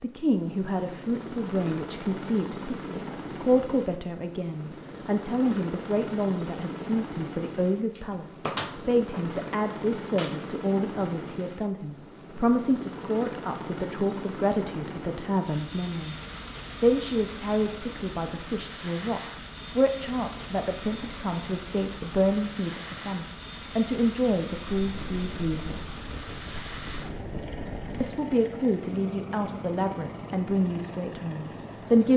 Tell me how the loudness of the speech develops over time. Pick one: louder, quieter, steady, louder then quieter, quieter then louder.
steady.